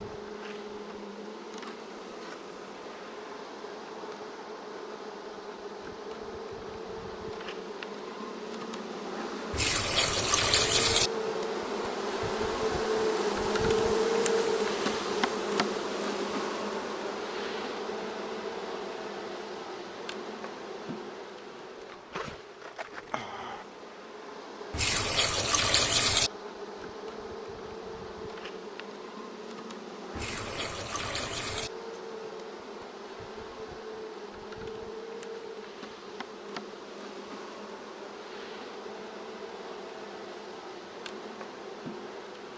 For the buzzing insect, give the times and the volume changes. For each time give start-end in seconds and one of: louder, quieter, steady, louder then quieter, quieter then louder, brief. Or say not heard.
0.0-42.5 louder then quieter.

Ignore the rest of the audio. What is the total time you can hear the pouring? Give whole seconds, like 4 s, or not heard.
5 s.